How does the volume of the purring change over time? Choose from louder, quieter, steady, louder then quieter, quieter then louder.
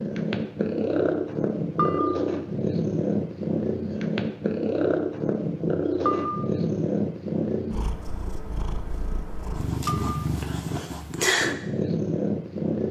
quieter then louder.